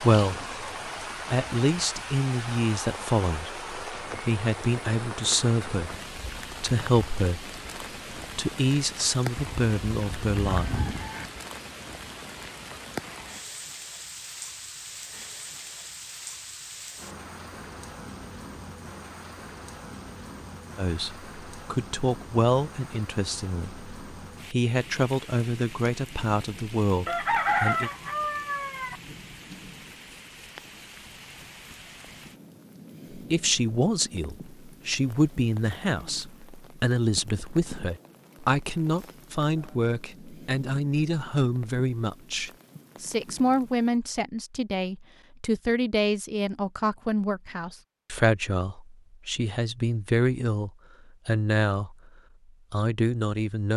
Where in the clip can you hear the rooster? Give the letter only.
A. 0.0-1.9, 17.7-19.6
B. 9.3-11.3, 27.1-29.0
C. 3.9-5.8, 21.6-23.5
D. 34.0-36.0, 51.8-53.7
B.